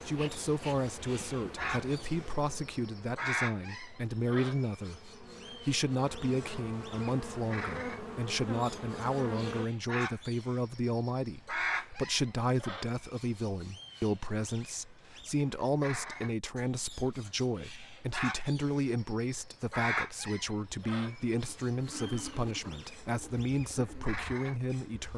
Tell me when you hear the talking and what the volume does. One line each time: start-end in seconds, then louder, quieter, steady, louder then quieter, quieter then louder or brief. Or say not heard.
0.1-25.1 steady.